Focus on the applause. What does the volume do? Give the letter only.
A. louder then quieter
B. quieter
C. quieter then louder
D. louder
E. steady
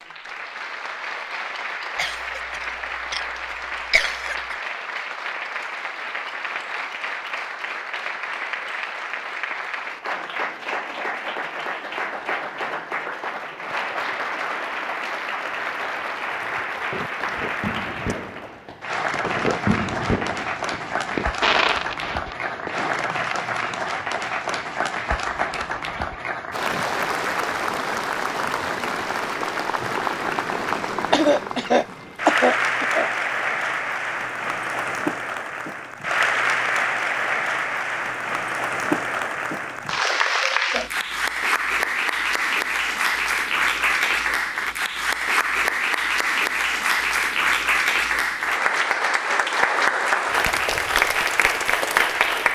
D.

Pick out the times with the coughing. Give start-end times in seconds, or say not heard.
1.9-4.5, 31.1-33.1.